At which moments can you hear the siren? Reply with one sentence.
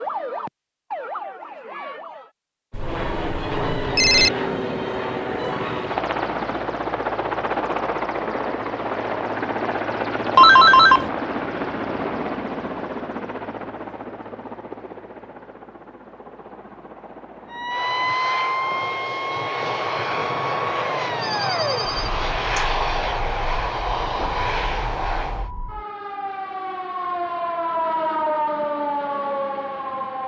The siren can be heard from 0.0 to 2.3 s and from 17.5 to 30.2 s.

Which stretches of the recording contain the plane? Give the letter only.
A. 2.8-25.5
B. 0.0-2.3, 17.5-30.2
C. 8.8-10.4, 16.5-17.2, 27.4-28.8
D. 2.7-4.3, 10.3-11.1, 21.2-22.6
A.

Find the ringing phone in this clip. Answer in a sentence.
The ringing phone can be heard from 2.7 to 4.3 s, from 10.3 to 11.1 s and from 21.2 to 22.6 s.